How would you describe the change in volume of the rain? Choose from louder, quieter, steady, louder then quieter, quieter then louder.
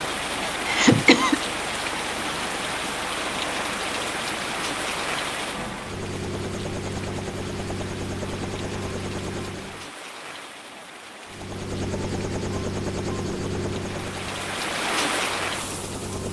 quieter then louder.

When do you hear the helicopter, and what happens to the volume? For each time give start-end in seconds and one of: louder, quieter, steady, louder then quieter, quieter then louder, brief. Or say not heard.
0.0-9.9 louder
11.2-16.2 quieter.